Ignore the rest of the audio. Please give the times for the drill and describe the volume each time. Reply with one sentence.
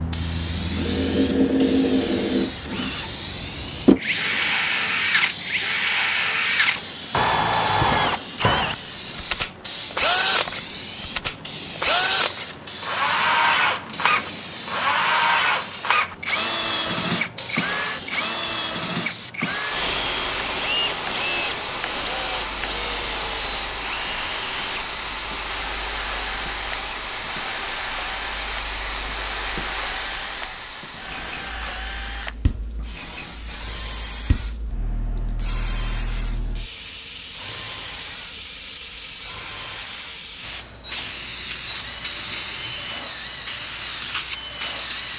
You can hear the drill from 0.0 to 45.1 s, getting quieter.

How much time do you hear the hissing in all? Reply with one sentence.
You can hear the hissing for 45 seconds altogether.